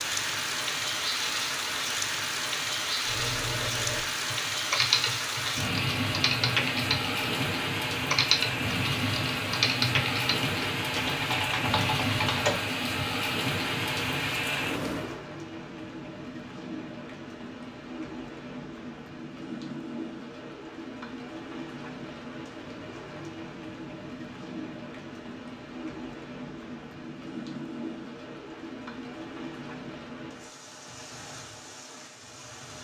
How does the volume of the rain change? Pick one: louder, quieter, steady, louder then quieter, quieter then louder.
quieter.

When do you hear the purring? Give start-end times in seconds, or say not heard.
not heard.